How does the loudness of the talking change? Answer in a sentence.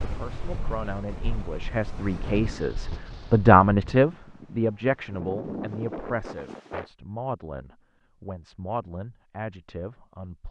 The volume of the talking goes up, then down.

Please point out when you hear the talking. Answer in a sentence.
The talking can be heard from 0.0 to 10.4 s.